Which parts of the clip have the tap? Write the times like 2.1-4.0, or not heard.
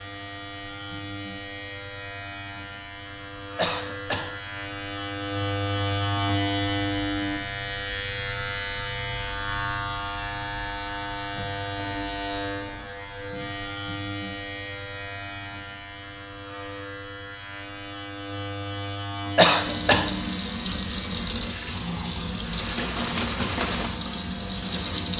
19.4-25.1.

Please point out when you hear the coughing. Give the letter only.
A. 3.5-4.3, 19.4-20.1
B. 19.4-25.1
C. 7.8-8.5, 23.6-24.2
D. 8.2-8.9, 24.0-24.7
A.